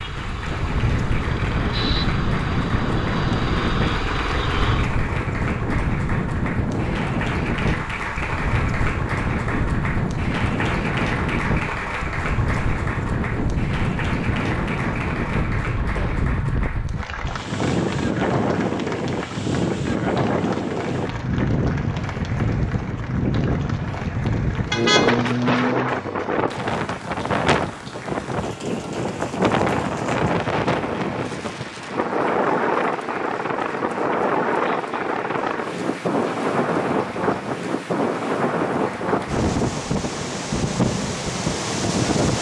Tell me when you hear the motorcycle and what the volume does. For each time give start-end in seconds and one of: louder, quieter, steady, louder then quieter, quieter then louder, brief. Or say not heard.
0.0-5.0 louder.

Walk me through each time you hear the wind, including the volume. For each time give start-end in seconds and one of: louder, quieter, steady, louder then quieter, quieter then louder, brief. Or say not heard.
0.0-42.3 steady.